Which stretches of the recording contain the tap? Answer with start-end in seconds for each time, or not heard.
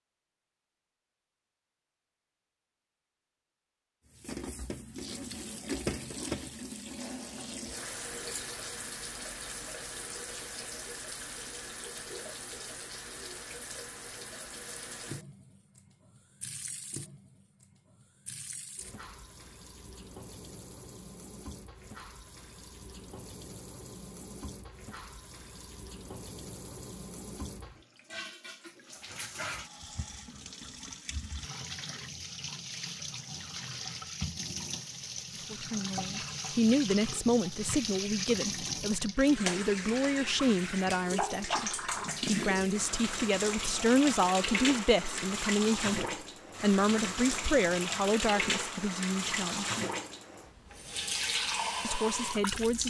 4.2-52.8.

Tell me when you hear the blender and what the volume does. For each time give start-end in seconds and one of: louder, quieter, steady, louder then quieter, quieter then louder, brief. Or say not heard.
not heard.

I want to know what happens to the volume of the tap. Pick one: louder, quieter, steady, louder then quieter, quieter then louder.
quieter then louder.